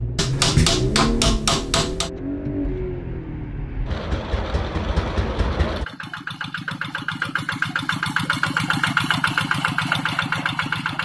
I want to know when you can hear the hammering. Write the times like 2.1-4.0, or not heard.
0.1-2.1.